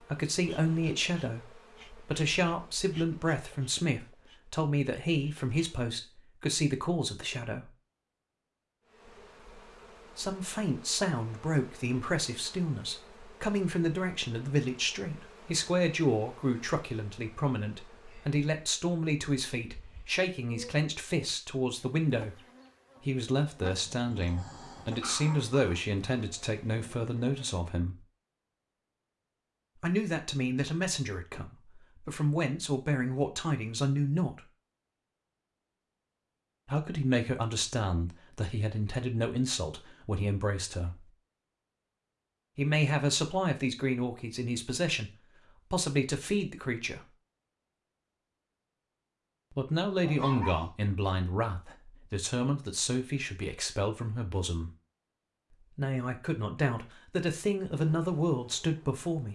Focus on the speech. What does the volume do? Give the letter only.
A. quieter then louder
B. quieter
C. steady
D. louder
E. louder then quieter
C.